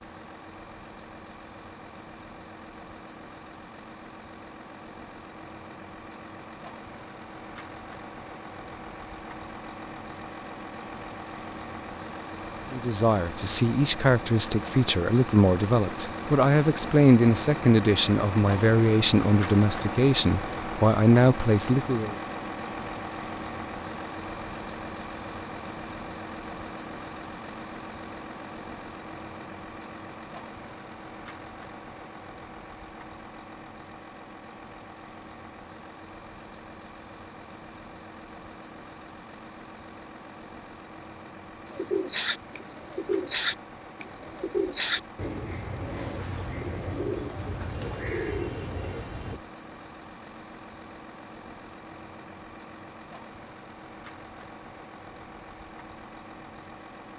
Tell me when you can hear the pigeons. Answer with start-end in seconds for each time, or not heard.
41.6-49.4.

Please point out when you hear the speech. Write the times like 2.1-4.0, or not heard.
12.7-22.1.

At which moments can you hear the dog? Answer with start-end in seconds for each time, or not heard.
not heard.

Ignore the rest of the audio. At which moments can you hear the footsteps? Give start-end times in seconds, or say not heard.
not heard.